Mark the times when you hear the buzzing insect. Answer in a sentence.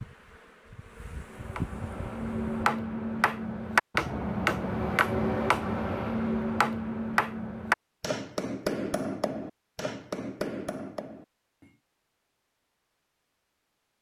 You can hear the buzzing insect from 0.0 to 2.6 s.